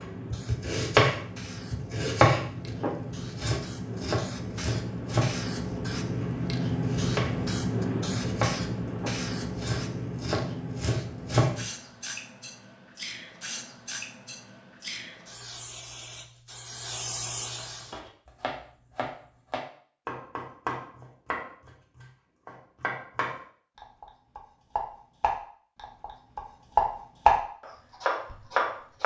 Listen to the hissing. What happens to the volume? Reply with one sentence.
The volume of the hissing goes up, then down.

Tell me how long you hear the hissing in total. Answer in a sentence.
You can hear the hissing for 18 seconds altogether.